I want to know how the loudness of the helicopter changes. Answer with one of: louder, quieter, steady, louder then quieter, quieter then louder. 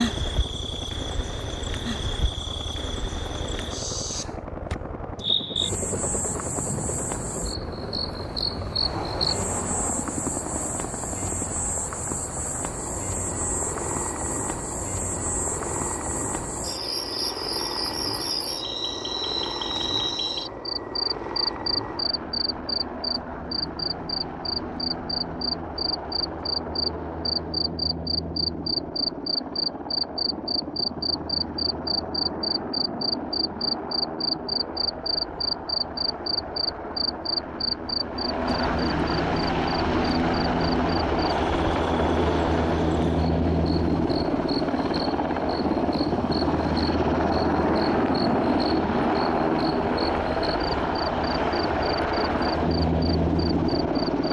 louder.